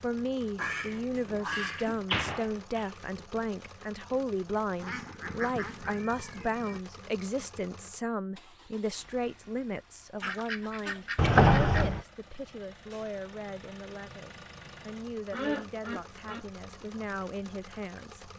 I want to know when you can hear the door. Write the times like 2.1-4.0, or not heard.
1.2-2.9, 11.2-12.0.